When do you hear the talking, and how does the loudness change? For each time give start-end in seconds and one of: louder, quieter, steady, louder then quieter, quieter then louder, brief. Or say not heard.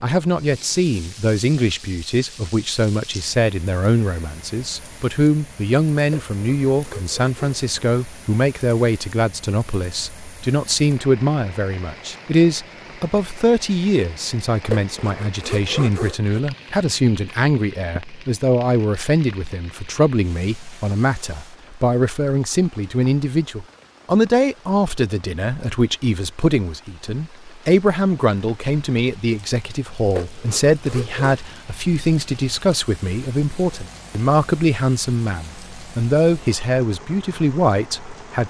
0.0-38.4 steady.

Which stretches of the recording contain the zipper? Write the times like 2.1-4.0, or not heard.
6.1-7.6, 14.7-16.4, 30.1-31.4.